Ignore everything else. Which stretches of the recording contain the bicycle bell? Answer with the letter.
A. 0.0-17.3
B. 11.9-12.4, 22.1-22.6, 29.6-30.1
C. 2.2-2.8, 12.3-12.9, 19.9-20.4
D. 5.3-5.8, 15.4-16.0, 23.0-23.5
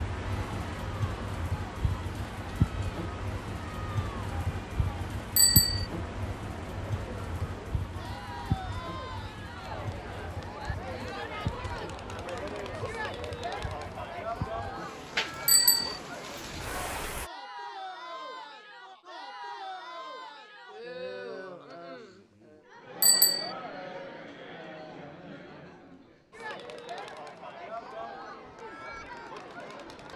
D.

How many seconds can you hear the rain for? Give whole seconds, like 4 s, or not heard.
17 s.